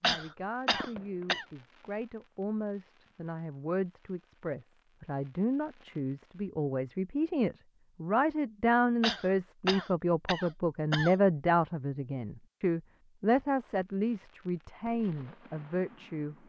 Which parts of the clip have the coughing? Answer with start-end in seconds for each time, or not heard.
0.0-1.4, 9.0-11.2.